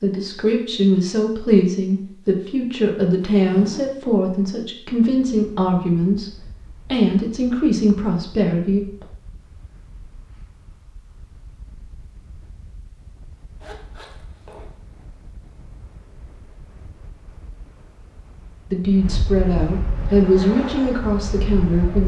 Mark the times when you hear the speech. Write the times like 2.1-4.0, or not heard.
0.0-6.3, 6.9-9.1, 18.7-22.0.